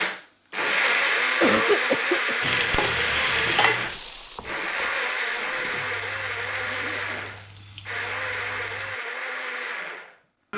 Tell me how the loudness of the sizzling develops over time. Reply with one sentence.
The volume of the sizzling goes down.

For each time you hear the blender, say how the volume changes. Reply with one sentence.
The blender can be heard from 0.0 to 10.5 s, getting quieter.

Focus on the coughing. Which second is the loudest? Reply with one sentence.
The volume of the coughing peaks at 2 seconds.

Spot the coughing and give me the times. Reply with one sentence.
You can hear the coughing from 1.4 to 2.4 s and from 6.6 to 7.4 s.